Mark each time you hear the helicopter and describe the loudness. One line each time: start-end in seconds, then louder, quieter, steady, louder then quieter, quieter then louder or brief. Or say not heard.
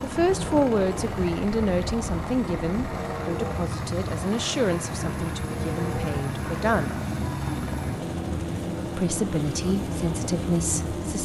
0.0-11.2 steady.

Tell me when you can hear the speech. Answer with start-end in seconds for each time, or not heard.
0.0-7.0, 8.9-11.2.